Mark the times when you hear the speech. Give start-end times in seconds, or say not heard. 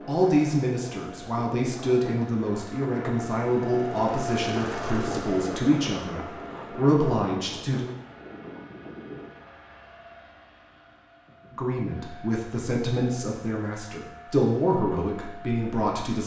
0.1-7.8, 11.5-16.2.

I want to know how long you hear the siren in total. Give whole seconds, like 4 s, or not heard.
not heard.